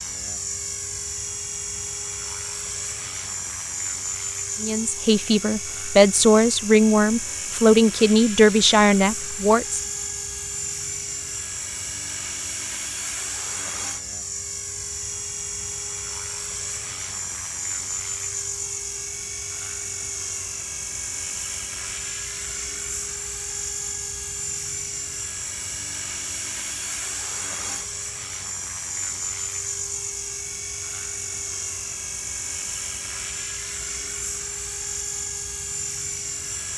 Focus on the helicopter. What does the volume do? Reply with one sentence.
The volume of the helicopter stays about the same.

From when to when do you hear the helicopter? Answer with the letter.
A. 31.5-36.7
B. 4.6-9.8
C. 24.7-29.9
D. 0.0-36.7
D.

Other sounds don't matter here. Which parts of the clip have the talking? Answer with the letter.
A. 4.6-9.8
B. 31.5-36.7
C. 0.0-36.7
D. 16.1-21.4
A.